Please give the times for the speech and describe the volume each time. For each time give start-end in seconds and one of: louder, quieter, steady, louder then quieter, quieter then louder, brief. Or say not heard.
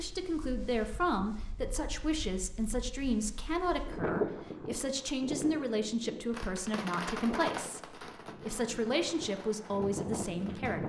0.0-10.8 steady.